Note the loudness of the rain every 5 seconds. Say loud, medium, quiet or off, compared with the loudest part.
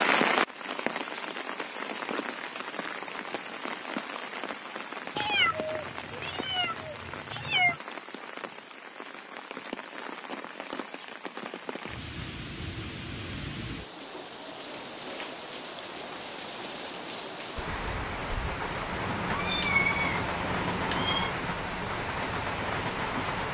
loud, medium, medium, loud, loud.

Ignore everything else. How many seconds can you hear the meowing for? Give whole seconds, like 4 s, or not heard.
5 s.